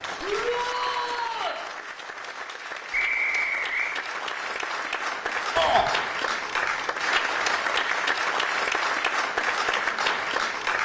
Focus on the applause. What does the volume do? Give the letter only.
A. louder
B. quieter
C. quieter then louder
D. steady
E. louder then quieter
A.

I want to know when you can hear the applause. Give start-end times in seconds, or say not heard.
0.0-10.7.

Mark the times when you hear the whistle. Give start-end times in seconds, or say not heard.
2.9-4.0.